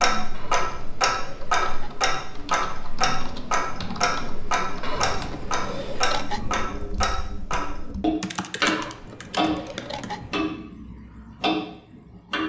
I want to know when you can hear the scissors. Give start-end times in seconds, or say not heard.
0.3-1.9, 4.8-6.8, 8.6-10.5.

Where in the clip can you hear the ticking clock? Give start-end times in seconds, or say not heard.
0.0-12.4.